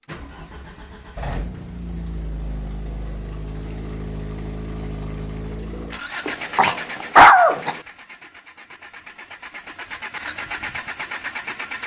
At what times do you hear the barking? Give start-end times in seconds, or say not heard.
6.2-7.8.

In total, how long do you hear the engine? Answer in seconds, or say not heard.
12 s.